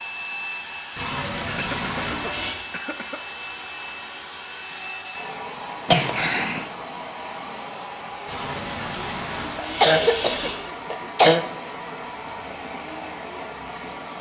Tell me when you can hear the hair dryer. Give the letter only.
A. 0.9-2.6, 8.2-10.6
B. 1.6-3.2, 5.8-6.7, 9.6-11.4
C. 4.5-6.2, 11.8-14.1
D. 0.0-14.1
D.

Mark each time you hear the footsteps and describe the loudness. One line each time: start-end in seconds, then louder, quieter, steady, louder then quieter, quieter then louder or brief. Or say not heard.
not heard.